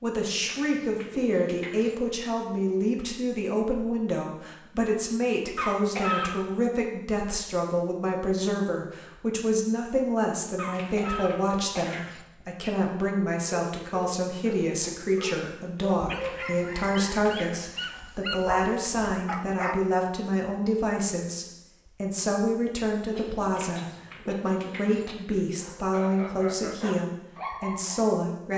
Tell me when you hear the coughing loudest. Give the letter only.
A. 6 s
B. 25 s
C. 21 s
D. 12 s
A.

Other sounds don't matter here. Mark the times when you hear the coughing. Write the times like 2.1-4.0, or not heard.
5.5-6.3, 10.6-12.1, 23.1-25.1.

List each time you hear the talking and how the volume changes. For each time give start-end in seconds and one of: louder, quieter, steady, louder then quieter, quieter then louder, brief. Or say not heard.
0.0-28.5 steady.